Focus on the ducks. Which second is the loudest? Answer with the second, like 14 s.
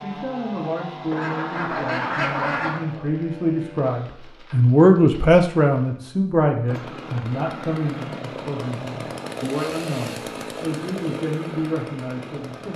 2 s.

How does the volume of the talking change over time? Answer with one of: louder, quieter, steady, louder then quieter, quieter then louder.
louder then quieter.